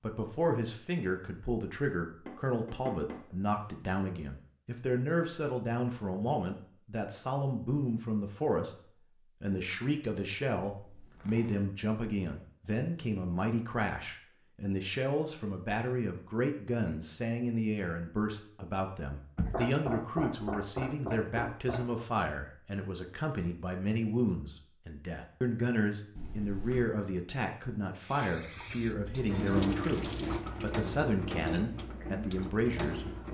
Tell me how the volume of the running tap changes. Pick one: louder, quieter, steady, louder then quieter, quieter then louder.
louder then quieter.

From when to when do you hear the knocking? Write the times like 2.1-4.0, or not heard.
2.2-3.8, 19.4-22.1.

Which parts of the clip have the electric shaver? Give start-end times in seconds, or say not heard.
not heard.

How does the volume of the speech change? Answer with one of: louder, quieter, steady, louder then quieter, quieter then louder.
steady.